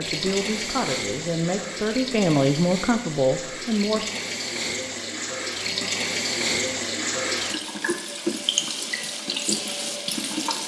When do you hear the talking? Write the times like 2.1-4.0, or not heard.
0.0-4.0.